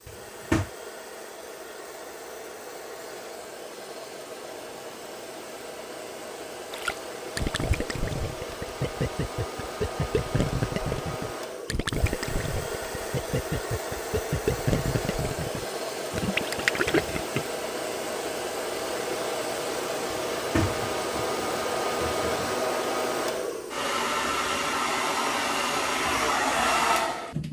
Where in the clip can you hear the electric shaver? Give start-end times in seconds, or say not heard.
not heard.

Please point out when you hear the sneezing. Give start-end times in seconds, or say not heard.
not heard.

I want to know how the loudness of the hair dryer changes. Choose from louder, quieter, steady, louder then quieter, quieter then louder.
louder.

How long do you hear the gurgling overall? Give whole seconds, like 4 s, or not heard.
11 s.